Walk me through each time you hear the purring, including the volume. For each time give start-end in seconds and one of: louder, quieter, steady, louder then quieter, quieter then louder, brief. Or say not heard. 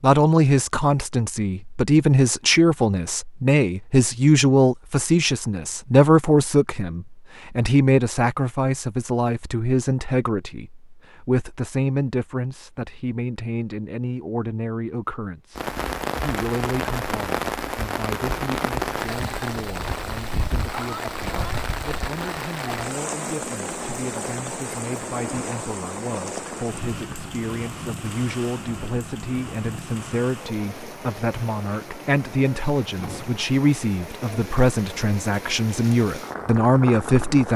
not heard.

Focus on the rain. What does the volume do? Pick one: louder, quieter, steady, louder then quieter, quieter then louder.
quieter.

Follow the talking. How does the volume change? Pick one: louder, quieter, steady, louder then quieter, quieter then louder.
quieter then louder.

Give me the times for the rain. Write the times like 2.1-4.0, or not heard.
15.6-37.5.